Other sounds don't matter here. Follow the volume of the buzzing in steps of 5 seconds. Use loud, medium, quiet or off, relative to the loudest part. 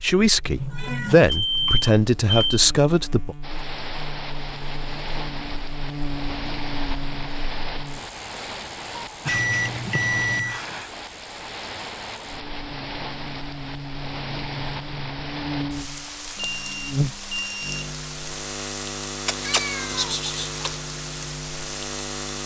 medium, medium, medium, loud, loud.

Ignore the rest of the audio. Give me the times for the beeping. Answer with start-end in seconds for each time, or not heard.
0.5-2.6, 9.2-10.6, 16.4-17.9.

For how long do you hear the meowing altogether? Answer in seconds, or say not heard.
5 s.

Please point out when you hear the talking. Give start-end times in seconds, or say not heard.
0.0-3.4.